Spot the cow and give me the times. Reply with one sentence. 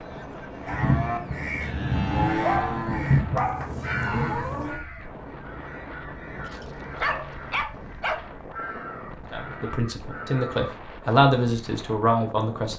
The cow can be heard from 0.0 to 4.8 s.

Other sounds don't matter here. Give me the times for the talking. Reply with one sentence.
The talking can be heard from 9.3 to 12.7 s.